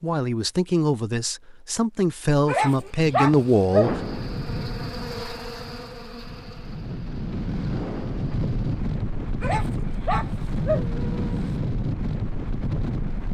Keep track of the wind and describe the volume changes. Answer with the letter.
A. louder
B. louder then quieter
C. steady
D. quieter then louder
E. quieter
A.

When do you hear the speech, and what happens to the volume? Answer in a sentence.
You can hear the speech from 0.0 to 4.0 s, getting quieter then louder.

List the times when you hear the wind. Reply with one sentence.
The wind can be heard from 3.8 to 13.2 s.